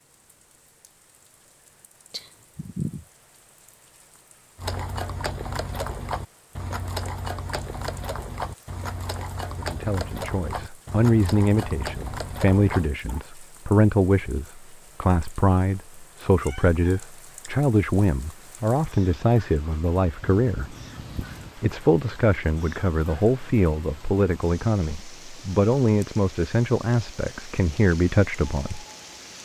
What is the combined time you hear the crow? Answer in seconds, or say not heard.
not heard.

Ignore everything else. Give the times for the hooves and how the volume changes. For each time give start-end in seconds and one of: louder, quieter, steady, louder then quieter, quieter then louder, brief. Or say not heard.
4.5-13.2 steady.